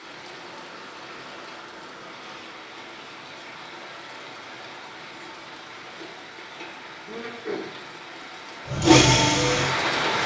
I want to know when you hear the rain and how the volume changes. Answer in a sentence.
The rain can be heard from 0.0 to 10.2 s, getting louder.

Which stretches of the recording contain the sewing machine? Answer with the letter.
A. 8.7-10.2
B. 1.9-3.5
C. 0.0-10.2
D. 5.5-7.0
A.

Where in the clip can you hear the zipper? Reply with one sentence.
The zipper can't be heard in this clip.